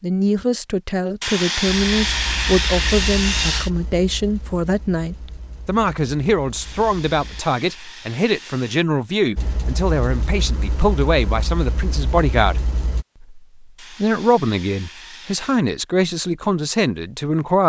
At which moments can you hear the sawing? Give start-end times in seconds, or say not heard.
1.2-3.7, 6.6-8.8, 13.8-15.6.